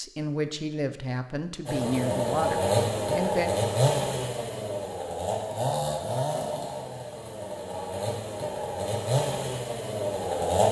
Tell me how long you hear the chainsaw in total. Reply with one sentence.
You can hear the chainsaw for 9 seconds altogether.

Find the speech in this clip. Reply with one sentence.
The speech can be heard from 0.0 to 3.5 s.